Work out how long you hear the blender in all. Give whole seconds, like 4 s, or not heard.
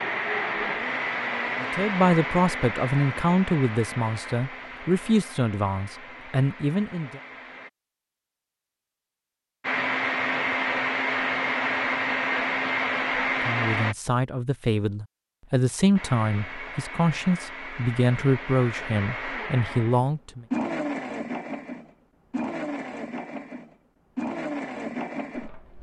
22 s.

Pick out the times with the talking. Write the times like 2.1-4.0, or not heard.
1.6-7.2, 13.4-20.4.